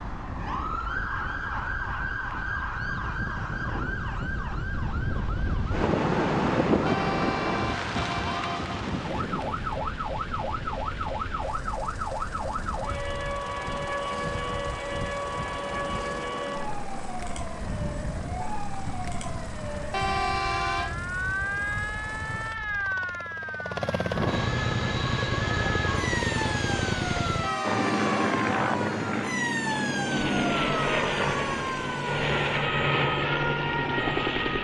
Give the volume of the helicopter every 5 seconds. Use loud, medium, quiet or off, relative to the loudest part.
quiet, quiet, quiet, quiet, medium, loud, loud.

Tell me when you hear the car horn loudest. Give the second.
20 s.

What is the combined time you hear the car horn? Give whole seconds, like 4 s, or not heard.
4 s.